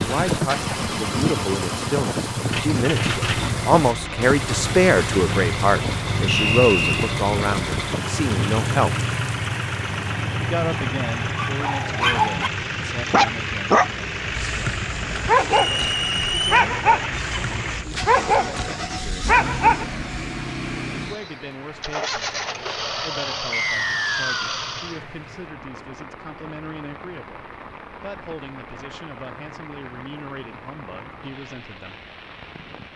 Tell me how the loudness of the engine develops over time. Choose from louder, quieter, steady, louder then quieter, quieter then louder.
steady.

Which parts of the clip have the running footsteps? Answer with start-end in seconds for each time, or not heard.
not heard.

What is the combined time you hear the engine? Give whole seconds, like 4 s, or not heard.
25 s.